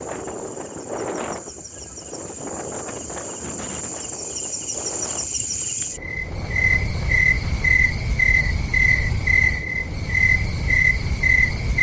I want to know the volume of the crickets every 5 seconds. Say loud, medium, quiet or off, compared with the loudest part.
quiet, loud, loud.